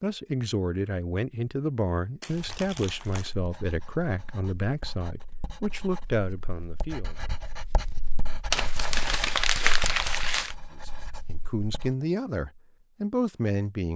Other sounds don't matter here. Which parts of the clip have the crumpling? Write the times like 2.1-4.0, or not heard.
2.2-3.4, 8.5-10.6.